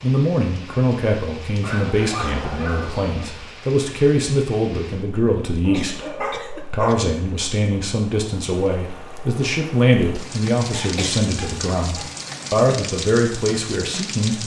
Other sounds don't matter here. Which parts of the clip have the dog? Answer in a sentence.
You can hear the dog from 1.6 to 3.2 s, from 5.6 to 7.0 s and from 10.7 to 12.1 s.